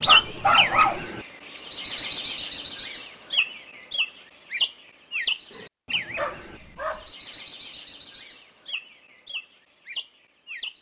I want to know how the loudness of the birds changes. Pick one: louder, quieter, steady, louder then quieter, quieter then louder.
quieter.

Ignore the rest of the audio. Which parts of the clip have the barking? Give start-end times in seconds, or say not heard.
0.1-1.0, 6.2-7.1.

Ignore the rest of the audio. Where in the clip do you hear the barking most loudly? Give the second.
1 s.